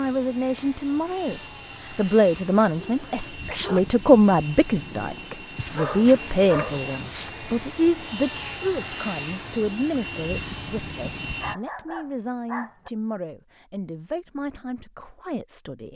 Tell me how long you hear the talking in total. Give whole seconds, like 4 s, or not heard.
16 s.